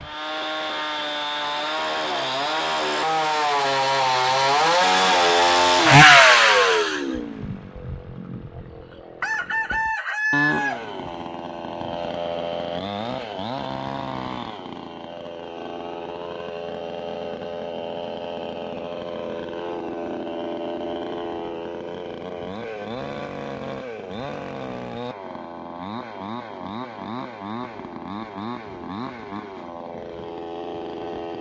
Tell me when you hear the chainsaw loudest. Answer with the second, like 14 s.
6 s.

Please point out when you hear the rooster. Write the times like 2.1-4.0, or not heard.
9.2-10.8.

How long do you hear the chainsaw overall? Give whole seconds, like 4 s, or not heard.
31 s.